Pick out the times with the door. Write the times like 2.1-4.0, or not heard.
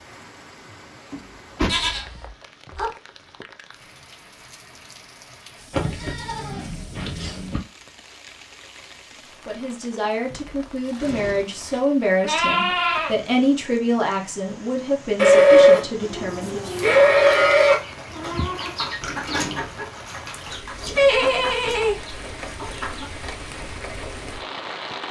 1.1-1.8, 10.3-11.5, 19.0-19.9.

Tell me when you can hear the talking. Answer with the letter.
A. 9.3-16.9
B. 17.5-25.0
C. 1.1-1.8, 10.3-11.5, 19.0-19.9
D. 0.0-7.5
A.